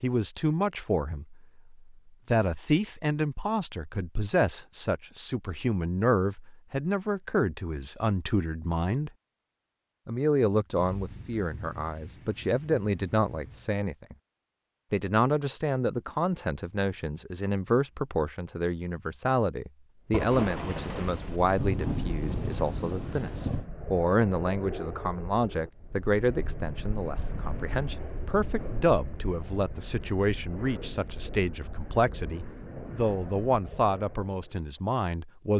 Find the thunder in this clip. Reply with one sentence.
You can hear the thunder from 10.8 to 13.7 s and from 20.1 to 23.6 s.